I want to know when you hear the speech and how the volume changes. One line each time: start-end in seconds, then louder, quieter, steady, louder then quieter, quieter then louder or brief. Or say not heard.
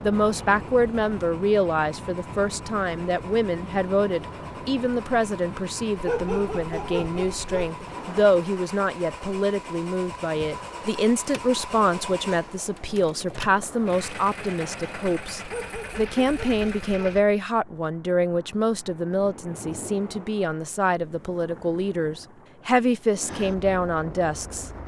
0.0-24.7 steady.